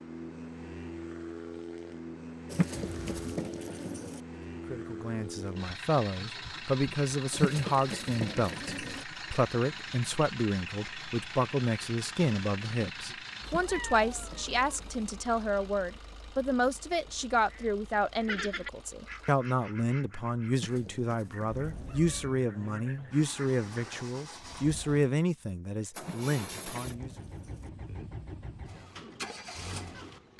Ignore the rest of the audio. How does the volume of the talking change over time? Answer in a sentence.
The loudness of the talking stays about the same.